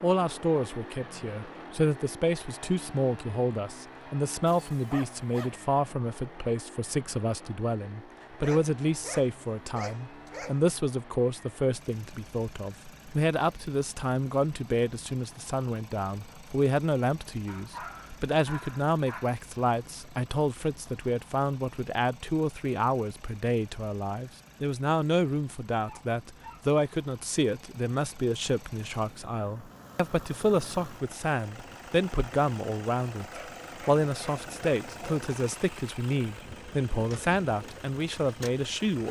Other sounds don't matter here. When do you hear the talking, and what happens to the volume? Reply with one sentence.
You can hear the talking from 0.0 to 39.0 s, at a steady volume.